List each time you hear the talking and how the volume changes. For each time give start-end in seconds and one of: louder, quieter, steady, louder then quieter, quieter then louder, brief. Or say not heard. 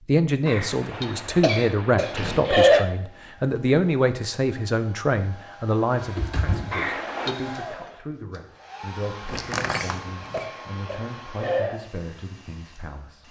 0.1-13.2 quieter.